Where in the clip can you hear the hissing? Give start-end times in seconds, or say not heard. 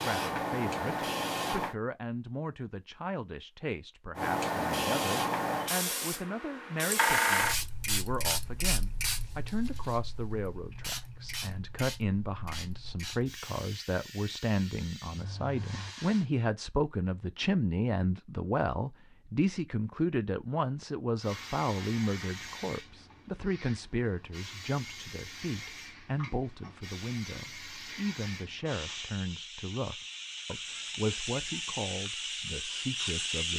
0.0-1.8, 4.2-16.2, 21.2-33.5.